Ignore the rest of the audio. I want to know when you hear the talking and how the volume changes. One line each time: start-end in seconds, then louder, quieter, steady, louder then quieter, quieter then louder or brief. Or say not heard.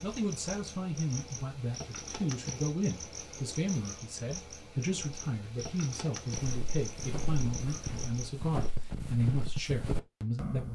0.0-10.6 steady.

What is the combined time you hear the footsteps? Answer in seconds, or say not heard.
4 s.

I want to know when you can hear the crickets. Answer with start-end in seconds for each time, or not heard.
0.0-8.6.